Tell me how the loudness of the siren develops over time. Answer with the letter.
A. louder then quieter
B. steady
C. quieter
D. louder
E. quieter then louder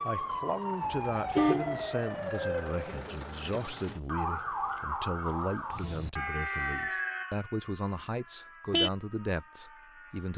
C.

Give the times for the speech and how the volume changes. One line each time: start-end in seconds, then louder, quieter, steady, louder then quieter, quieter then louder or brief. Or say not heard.
0.0-10.3 steady.